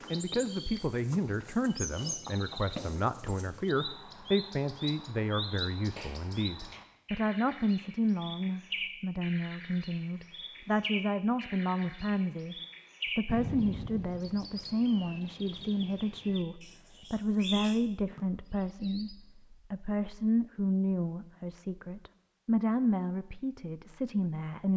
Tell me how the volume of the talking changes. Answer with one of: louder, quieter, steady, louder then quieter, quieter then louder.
steady.